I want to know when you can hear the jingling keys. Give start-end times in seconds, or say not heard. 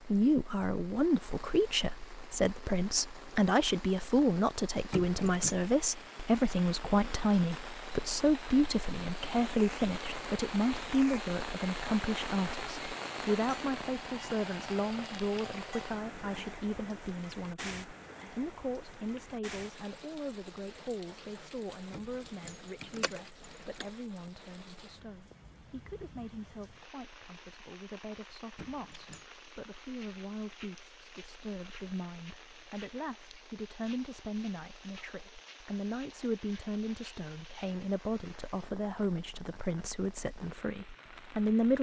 4.9-5.5, 21.9-23.9, 28.6-29.2.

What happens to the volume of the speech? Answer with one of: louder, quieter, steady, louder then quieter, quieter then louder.
quieter then louder.